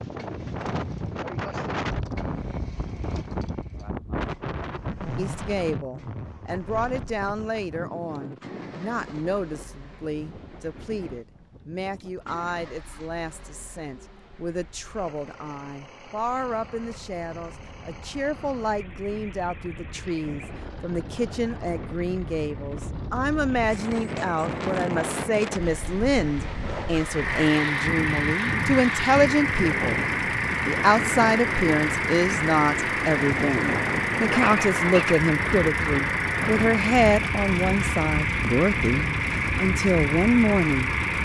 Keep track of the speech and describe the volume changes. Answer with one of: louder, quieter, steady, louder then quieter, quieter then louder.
louder.